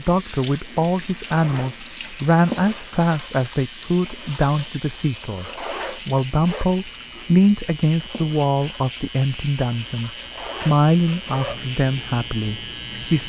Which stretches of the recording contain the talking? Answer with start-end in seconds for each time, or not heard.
0.0-13.2.